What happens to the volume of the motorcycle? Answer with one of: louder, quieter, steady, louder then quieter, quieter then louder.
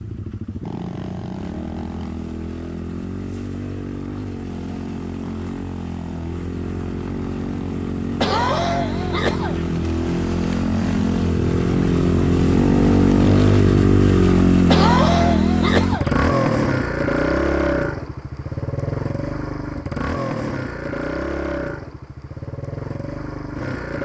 louder then quieter.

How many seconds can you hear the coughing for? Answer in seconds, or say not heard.
3 s.